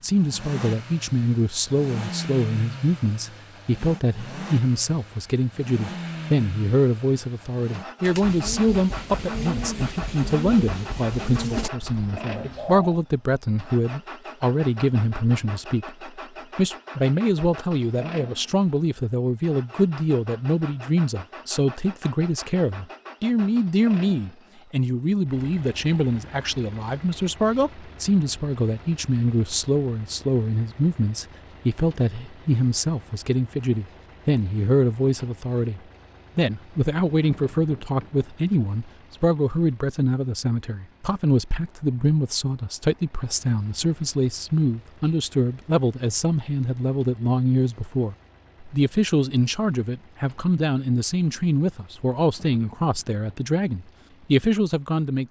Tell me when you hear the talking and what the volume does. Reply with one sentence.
The talking can be heard from 0.0 to 55.2 s, at a steady volume.